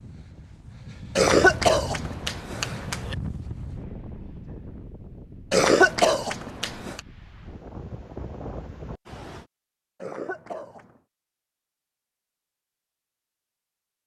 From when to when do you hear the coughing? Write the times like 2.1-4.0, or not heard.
1.1-3.1, 5.5-7.0, 10.0-10.9.